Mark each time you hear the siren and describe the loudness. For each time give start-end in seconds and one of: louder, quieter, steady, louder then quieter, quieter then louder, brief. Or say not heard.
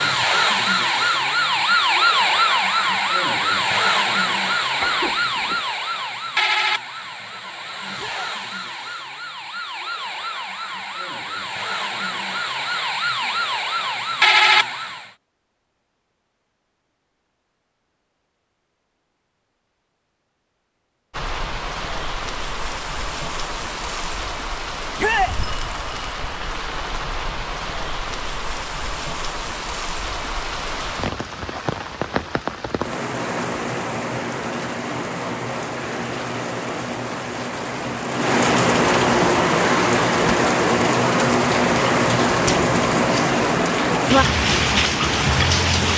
0.0-15.1 quieter then louder.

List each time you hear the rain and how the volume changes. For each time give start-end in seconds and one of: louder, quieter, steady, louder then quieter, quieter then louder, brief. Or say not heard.
21.1-45.9 louder.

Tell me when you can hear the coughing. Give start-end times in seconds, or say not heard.
4.8-5.7.